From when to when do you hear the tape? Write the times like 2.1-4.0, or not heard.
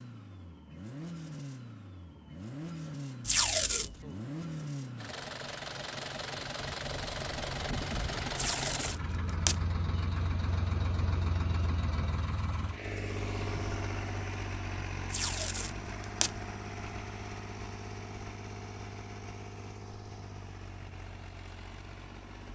3.2-4.0, 8.3-9.6, 15.1-16.3.